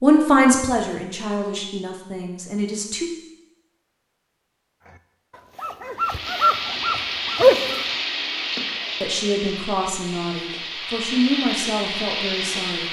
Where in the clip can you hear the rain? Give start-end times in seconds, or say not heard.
6.0-12.8.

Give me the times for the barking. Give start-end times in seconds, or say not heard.
4.8-7.8.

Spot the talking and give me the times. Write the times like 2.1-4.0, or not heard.
0.0-3.1, 9.0-12.8.